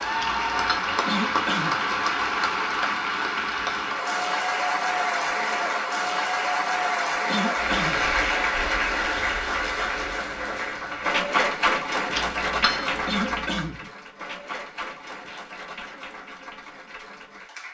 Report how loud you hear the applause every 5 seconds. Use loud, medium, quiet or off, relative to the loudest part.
loud, loud, loud, quiet.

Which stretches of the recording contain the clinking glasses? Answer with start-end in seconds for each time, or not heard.
0.2-0.8, 12.2-13.6.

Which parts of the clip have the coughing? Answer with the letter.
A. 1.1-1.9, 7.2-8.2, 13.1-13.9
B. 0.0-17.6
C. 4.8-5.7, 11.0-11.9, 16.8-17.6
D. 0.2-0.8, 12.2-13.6
A.